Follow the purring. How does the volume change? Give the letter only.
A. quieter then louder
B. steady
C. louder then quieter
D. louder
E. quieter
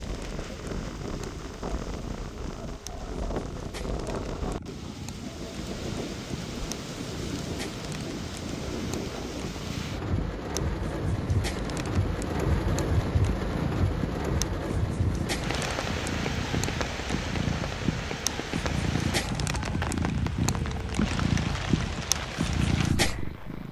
D.